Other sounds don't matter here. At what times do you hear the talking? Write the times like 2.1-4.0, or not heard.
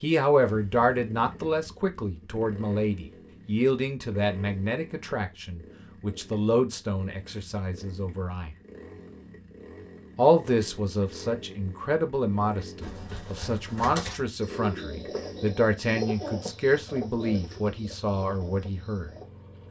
0.0-8.6, 10.2-19.1.